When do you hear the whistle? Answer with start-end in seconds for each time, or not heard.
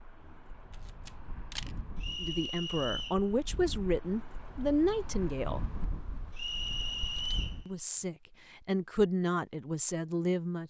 2.0-3.2, 6.3-7.6.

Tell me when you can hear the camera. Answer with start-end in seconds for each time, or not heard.
0.7-1.8, 7.1-7.5.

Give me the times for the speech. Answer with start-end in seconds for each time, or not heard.
2.2-5.6, 7.7-10.6.